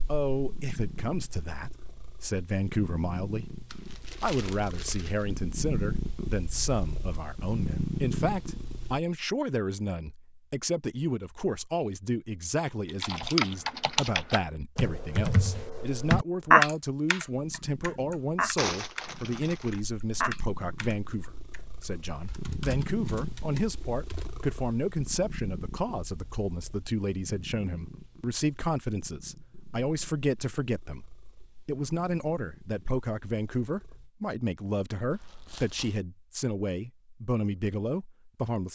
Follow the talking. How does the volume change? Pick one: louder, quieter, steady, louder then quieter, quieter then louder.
steady.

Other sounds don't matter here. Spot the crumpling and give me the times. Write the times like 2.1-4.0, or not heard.
3.6-5.3, 18.6-19.8, 35.1-36.0.